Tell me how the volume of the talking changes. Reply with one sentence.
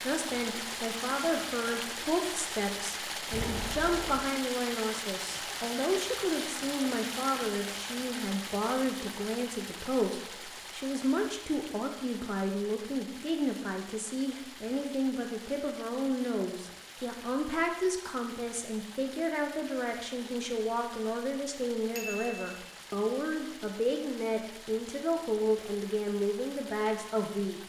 The volume of the talking stays about the same.